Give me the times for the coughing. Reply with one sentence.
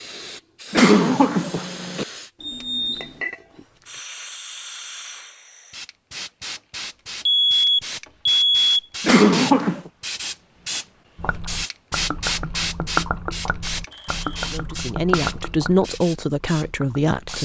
The coughing can be heard from 0.7 to 2.0 s and from 9.0 to 9.9 s.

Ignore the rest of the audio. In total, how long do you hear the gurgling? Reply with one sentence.
You can hear the gurgling for 6 seconds altogether.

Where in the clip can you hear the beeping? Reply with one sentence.
You can hear the beeping from 2.4 to 3.2 s, from 7.2 to 8.8 s and from 13.9 to 14.6 s.